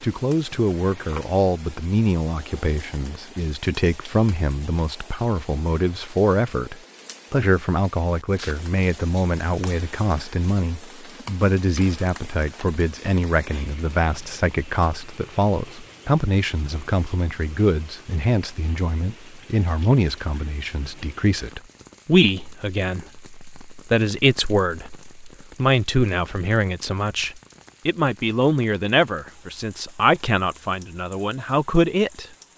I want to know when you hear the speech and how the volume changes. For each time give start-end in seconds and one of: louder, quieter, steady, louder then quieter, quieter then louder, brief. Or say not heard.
0.0-32.2 steady.